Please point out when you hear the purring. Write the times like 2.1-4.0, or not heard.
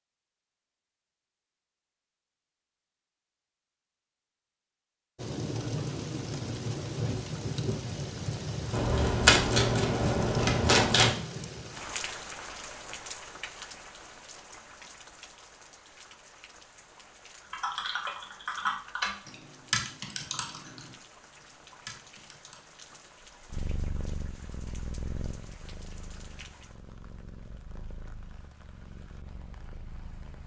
23.4-30.4.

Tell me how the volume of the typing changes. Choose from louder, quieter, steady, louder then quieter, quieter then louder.
quieter.